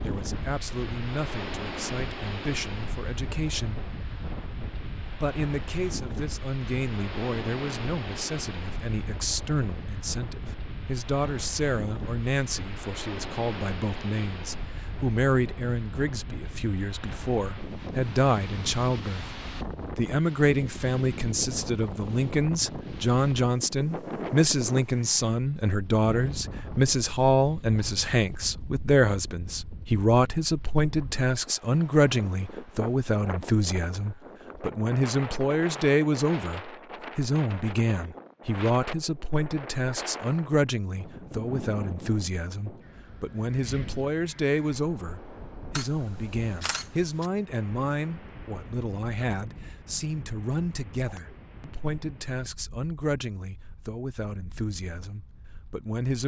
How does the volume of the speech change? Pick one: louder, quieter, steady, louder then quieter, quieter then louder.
louder then quieter.